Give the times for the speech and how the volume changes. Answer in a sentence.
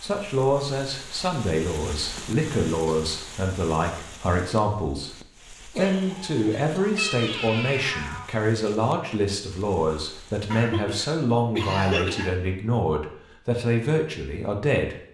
The speech can be heard from 0.0 to 14.9 s, at a steady volume.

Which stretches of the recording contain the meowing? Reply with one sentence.
The meowing can be heard from 7.0 to 8.3 s.